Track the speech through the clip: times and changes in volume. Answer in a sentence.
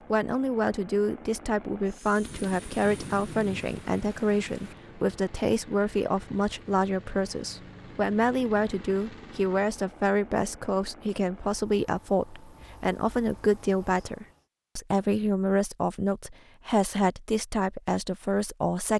The speech can be heard from 0.1 to 18.9 s, at a steady volume.